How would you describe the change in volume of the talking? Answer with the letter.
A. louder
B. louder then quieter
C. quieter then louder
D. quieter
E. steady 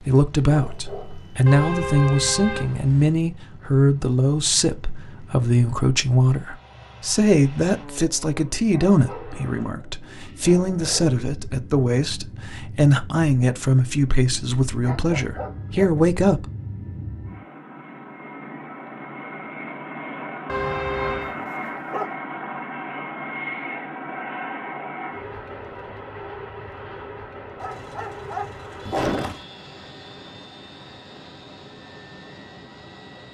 E.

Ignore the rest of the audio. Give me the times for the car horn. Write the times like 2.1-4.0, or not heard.
1.4-3.1, 20.4-21.4.